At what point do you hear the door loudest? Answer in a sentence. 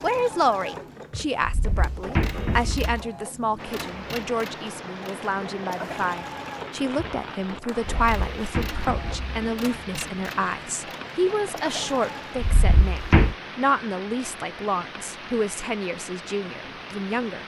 The volume of the door peaks at 13 seconds.